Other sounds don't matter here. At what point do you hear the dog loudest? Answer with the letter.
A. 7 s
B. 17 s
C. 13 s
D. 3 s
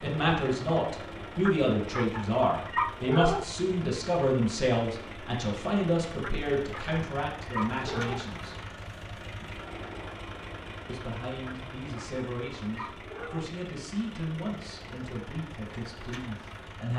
D.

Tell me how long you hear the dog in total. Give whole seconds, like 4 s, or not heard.
6 s.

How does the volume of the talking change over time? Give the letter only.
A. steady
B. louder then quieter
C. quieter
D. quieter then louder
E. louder
C.